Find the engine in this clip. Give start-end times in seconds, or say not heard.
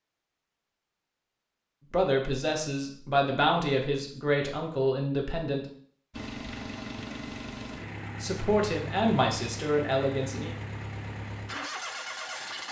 6.1-12.6.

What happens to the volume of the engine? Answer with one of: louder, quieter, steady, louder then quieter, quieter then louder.
steady.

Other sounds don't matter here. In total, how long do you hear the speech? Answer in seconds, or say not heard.
6 s.